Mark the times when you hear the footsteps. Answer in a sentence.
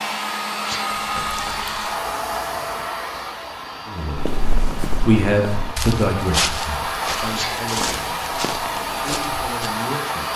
The footsteps can be heard from 4.2 to 9.4 s.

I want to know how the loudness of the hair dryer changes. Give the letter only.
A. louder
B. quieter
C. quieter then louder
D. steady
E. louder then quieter
C.